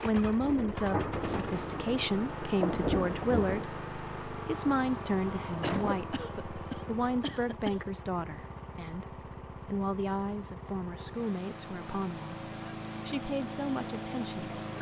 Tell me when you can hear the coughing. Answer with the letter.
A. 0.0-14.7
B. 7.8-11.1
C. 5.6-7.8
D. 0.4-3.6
C.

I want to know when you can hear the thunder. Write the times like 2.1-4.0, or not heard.
0.4-3.6.